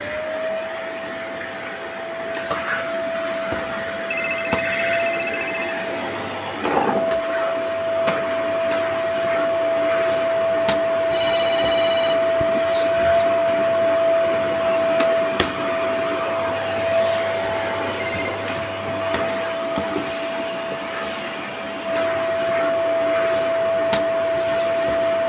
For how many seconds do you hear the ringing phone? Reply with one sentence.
You can hear the ringing phone for 4 seconds altogether.